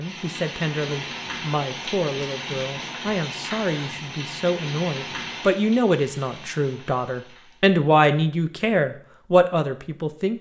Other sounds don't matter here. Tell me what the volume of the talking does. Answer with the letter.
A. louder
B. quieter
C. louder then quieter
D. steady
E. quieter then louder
A.